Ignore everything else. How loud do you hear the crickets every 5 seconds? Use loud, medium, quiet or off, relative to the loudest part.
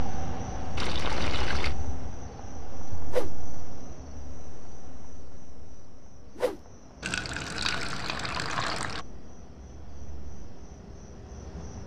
loud, medium, medium.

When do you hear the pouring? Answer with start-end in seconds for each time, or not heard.
0.8-1.8, 7.0-9.1.